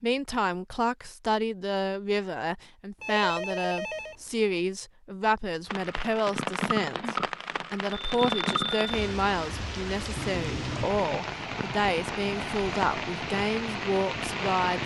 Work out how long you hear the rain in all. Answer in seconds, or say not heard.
9 s.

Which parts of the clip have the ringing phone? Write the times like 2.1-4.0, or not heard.
3.0-4.5, 7.9-8.9.